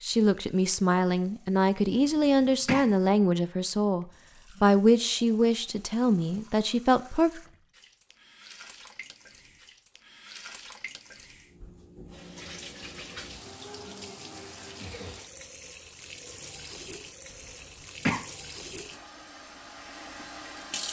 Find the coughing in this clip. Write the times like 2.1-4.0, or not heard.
1.9-2.9, 17.3-18.2.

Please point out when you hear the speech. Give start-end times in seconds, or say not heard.
0.0-7.4.